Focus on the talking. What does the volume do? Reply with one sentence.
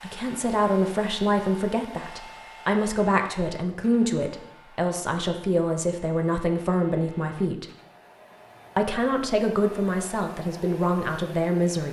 The loudness of the talking stays about the same.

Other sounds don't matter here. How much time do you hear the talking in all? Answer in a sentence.
You can hear the talking for 11 seconds altogether.